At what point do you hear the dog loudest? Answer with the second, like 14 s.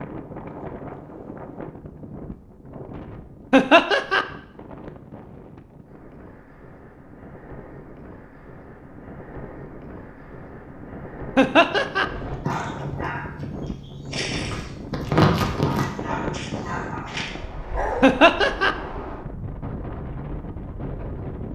15 s.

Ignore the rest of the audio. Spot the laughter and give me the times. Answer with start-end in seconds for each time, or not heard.
3.5-4.2, 11.3-12.1, 18.0-18.8.